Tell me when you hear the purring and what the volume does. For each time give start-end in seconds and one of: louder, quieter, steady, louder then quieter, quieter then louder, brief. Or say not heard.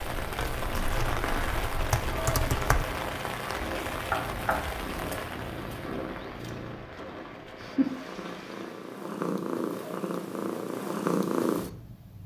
0.0-12.2 louder.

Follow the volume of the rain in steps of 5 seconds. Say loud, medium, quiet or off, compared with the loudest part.
loud, medium, off.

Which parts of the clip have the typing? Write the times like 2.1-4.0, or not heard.
0.1-2.9.